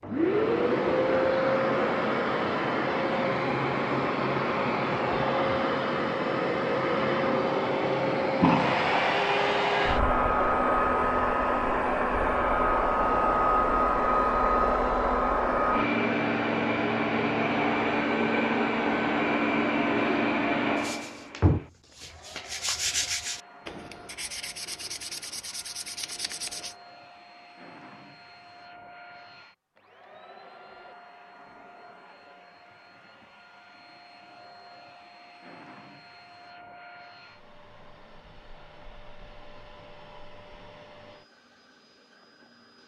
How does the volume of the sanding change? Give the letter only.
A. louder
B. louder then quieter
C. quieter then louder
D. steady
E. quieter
E.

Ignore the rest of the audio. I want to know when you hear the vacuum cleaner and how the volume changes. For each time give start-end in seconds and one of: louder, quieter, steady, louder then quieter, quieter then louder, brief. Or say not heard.
0.0-42.8 quieter.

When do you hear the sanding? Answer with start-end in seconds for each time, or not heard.
20.8-26.8.